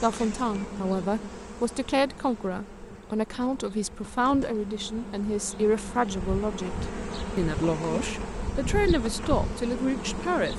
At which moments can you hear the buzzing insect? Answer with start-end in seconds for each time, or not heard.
0.0-10.5.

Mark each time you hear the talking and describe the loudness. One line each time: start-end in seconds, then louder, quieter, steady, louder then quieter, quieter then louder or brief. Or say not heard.
0.0-10.5 steady.